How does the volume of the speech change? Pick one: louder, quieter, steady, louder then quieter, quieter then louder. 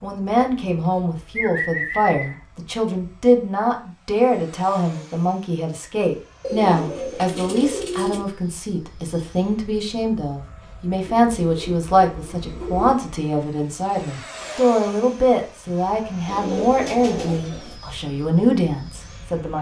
steady.